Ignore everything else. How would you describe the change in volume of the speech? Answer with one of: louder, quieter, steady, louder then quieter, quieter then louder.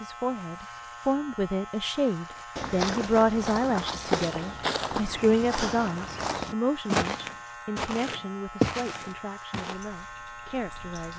quieter.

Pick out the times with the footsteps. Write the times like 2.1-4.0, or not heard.
2.3-9.8.